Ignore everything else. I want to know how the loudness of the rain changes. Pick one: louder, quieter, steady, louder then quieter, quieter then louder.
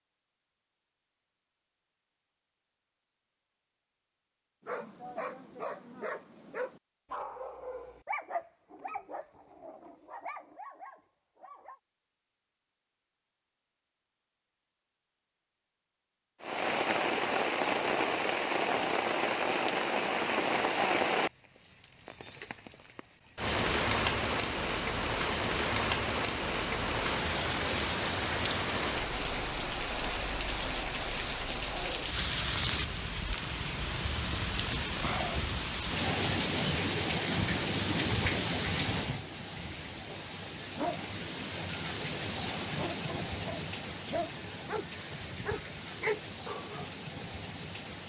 quieter.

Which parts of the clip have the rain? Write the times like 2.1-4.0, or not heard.
16.4-48.0.